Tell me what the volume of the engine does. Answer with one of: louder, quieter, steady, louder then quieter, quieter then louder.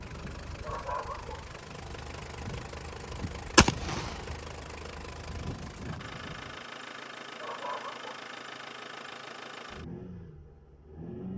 steady.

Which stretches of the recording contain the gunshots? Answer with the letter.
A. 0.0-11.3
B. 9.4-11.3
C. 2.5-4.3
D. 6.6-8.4
C.